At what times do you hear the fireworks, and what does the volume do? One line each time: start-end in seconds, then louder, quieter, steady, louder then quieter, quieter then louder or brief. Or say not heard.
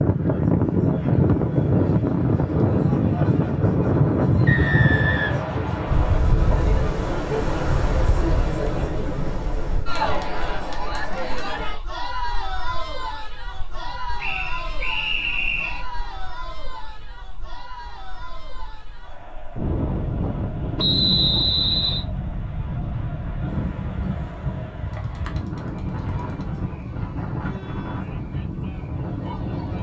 not heard.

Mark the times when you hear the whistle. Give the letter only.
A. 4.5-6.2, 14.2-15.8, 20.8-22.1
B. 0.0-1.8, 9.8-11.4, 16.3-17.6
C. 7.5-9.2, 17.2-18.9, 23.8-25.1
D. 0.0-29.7
A.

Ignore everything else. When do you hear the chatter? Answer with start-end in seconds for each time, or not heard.
0.0-29.7.